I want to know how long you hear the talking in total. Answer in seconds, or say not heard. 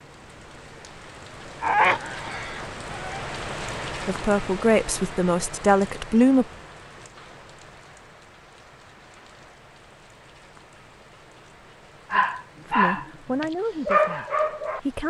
5 s.